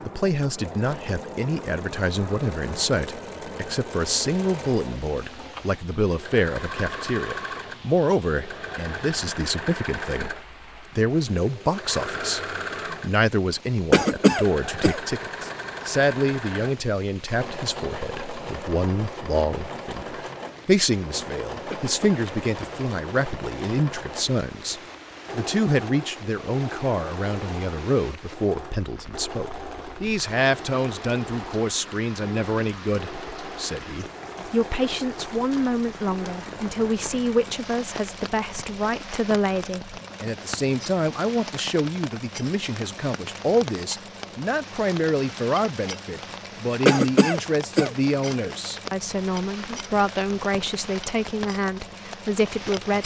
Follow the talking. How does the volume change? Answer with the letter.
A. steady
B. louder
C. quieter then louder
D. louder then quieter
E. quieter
A.